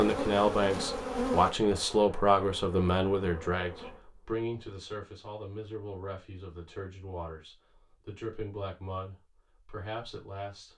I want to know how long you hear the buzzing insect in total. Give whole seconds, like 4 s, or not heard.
4 s.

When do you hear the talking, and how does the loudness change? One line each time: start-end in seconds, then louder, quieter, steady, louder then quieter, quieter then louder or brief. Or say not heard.
0.0-10.7 quieter.